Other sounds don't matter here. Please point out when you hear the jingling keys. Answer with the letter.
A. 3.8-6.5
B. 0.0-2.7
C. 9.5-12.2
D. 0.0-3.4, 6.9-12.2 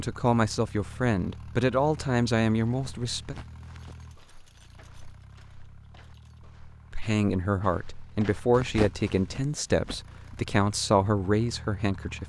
A.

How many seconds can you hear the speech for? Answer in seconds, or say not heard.
9 s.